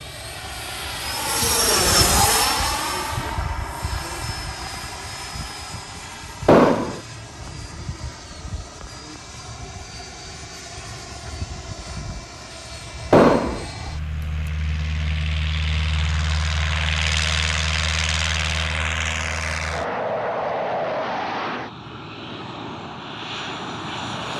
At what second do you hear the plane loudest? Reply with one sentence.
The loudest moment of the plane is at 2 seconds.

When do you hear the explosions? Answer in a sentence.
The explosions can be heard from 6.5 to 7.0 s and from 13.1 to 13.7 s.